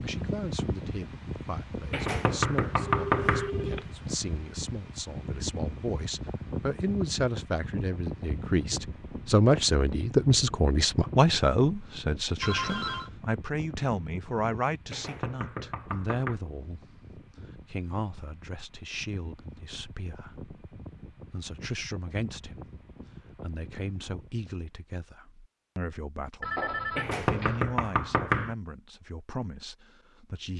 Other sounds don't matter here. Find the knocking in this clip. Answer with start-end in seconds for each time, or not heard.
1.9-3.5, 14.9-16.4, 26.9-28.6.